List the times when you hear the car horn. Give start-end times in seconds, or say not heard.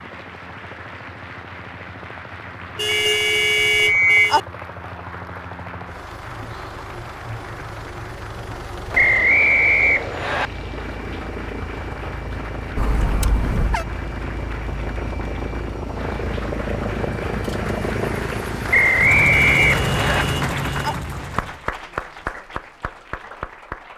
2.8-4.4, 12.8-13.8, 19.3-20.9.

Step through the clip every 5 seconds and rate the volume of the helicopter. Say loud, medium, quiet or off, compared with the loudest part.
quiet, medium, medium, loud, loud.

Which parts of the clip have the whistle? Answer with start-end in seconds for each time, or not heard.
2.9-4.3, 8.9-10.5, 18.7-20.2.